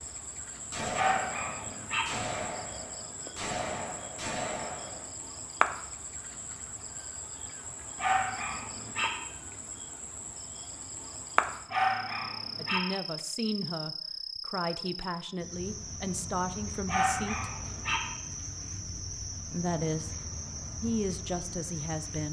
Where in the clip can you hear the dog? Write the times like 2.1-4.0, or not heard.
0.9-2.0, 8.0-9.1, 11.7-12.8, 16.9-18.0.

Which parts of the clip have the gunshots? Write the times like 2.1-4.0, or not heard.
0.7-5.1.